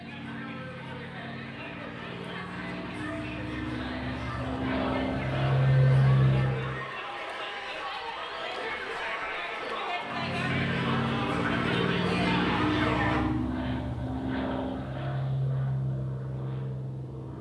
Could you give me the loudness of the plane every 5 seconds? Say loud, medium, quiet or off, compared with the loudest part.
quiet, loud, medium, medium.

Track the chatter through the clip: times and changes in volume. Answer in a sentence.
The chatter can be heard from 0.0 to 13.2 s, getting louder.